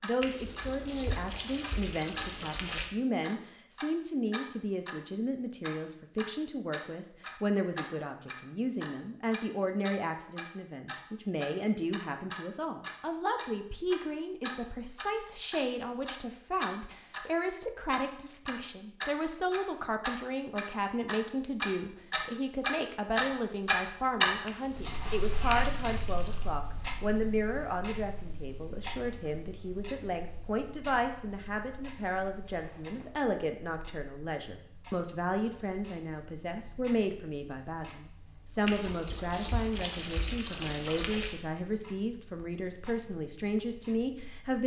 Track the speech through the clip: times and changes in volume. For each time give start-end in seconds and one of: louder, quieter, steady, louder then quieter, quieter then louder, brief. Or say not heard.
0.0-44.6 steady.